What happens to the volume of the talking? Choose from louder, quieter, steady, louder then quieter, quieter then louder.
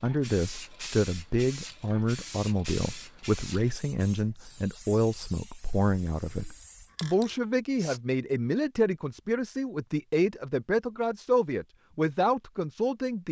steady.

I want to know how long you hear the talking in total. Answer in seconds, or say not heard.
13 s.